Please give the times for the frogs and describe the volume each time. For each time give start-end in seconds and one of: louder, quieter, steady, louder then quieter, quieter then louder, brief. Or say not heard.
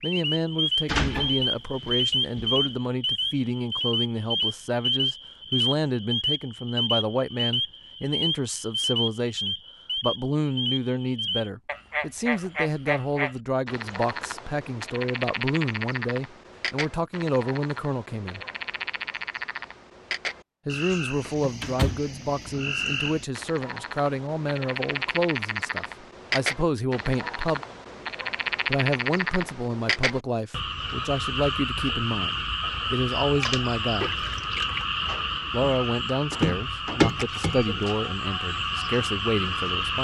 0.0-39.9 quieter then louder.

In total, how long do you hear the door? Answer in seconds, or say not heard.
4 s.